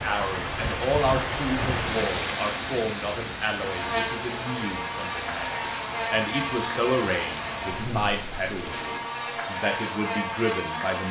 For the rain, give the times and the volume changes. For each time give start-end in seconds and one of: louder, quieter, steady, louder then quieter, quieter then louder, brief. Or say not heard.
0.0-9.0 quieter.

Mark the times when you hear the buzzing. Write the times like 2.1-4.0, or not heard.
3.5-11.0.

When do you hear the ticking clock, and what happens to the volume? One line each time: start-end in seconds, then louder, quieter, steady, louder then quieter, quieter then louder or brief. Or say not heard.
not heard.